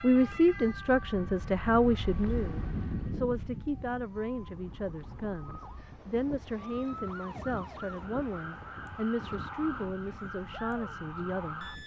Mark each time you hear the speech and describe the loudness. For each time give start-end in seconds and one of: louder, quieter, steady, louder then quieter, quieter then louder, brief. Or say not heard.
0.0-11.7 quieter.